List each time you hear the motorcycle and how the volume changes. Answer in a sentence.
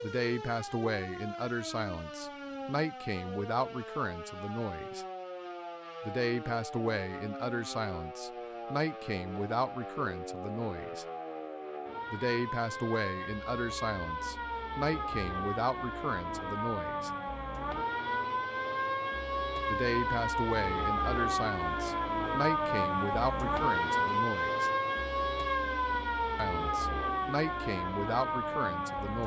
The motorcycle can't be heard in this clip.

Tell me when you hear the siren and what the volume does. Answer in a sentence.
You can hear the siren from 0.0 to 29.2 s, getting louder.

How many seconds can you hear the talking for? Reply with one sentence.
The talking can be heard for 23 seconds in total.